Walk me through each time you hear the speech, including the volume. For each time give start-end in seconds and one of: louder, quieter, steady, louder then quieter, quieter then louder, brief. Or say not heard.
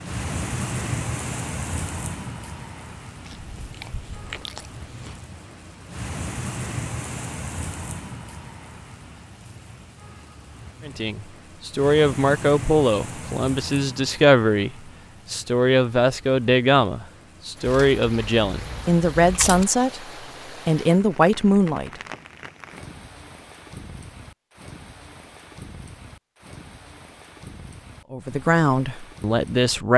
10.8-22.0 steady
28.1-29.9 brief.